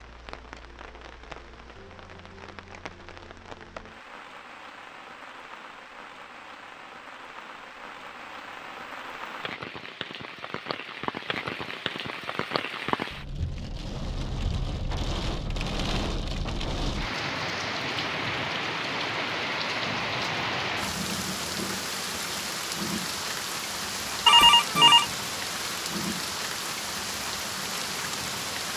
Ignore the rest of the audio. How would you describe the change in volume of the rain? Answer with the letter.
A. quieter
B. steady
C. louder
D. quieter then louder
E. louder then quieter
C.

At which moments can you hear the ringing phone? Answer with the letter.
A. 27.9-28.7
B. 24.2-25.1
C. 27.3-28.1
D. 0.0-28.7
B.